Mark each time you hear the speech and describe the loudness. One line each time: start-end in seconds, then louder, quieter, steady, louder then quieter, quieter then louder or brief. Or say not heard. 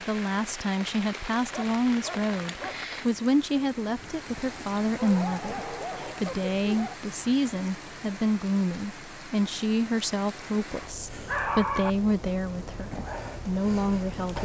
0.1-14.3 steady.